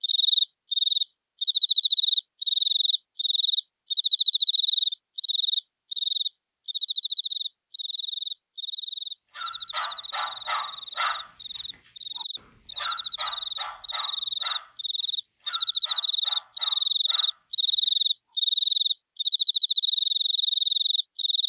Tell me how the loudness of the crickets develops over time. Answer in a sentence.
The volume of the crickets goes down, then up.